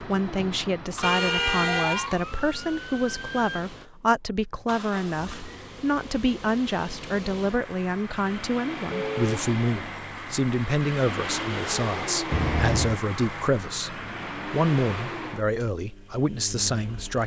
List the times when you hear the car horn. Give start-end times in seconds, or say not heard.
1.0-2.1, 8.9-9.4, 12.3-12.9.